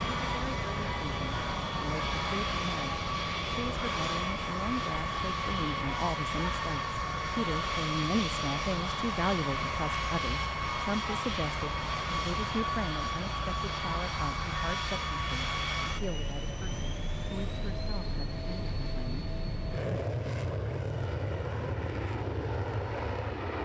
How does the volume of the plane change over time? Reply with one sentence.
The loudness of the plane stays about the same.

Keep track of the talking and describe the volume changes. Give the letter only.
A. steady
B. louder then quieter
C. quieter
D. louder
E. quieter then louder
B.